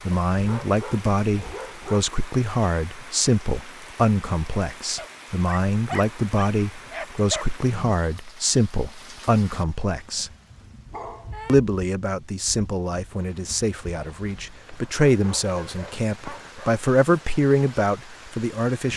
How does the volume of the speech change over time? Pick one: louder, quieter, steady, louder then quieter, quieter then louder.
steady.